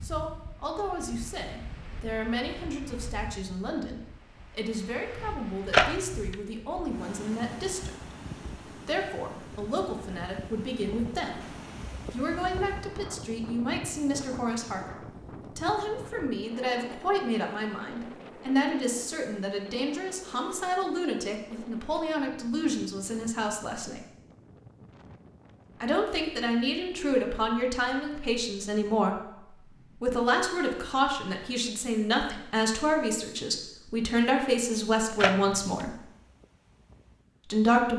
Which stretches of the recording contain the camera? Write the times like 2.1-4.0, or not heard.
5.7-6.3, 35.1-35.9.